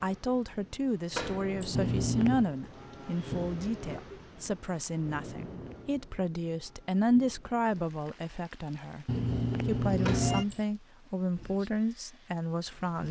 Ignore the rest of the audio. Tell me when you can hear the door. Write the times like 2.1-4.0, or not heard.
1.1-1.8, 10.0-10.7.